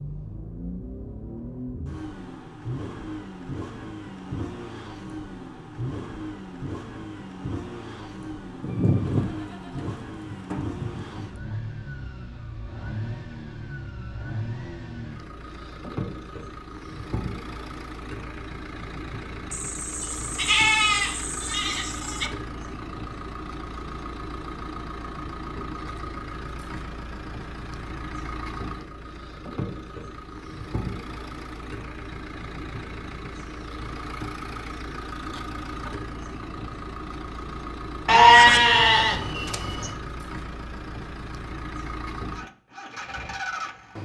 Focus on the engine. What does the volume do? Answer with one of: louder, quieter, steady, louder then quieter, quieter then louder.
steady.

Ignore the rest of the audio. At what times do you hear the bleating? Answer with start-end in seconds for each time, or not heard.
8.6-11.3, 19.5-22.3, 38.0-40.0.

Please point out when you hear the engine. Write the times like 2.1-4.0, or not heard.
0.0-44.0.